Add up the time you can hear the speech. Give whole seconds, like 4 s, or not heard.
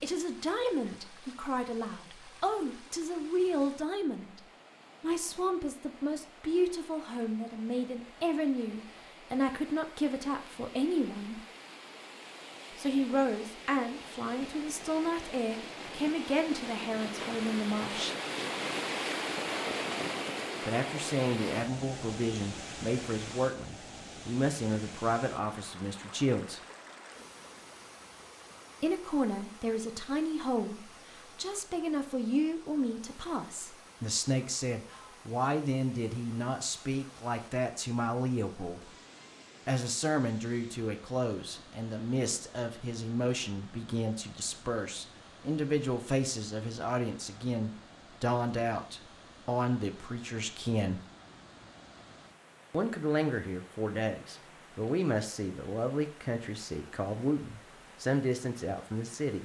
51 s.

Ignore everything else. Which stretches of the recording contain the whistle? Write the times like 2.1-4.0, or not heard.
not heard.